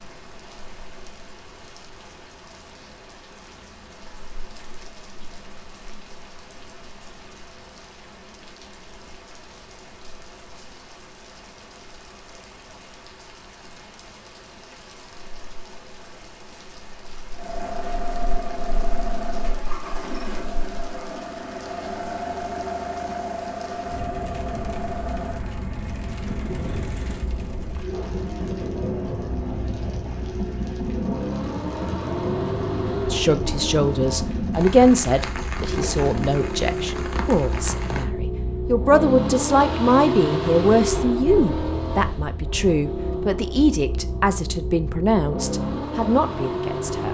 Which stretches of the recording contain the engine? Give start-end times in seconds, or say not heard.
17.3-47.0.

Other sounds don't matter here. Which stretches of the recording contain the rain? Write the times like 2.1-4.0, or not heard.
0.0-38.0.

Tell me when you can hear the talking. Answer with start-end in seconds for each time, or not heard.
33.1-47.0.